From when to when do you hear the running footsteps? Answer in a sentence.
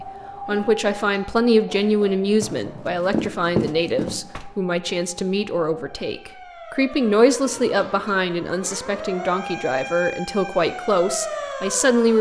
You can hear the running footsteps from 2.8 to 4.5 s.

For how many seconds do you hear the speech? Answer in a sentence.
You can hear the speech for 12 seconds altogether.